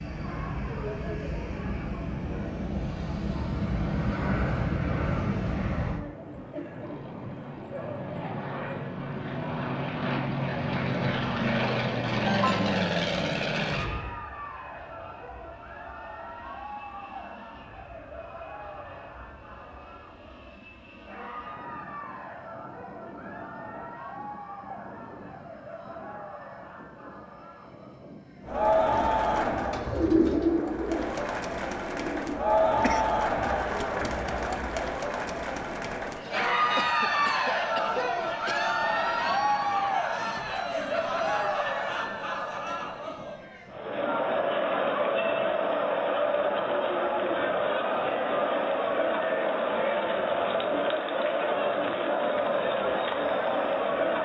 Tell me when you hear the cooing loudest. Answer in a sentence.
The volume of the cooing peaks at 30 seconds.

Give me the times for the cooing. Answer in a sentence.
The cooing can be heard from 29.3 to 32.4 s.